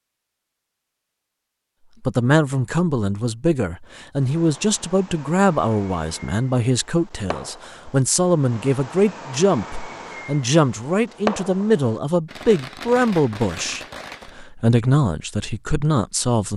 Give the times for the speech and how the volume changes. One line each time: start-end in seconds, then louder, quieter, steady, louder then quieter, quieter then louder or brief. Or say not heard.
2.0-16.5 steady.